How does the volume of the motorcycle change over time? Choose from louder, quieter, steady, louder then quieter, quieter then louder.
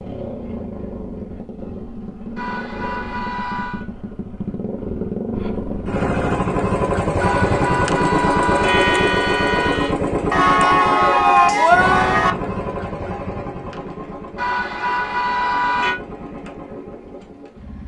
louder then quieter.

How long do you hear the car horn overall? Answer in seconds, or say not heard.
6 s.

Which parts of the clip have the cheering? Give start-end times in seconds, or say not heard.
10.3-12.3.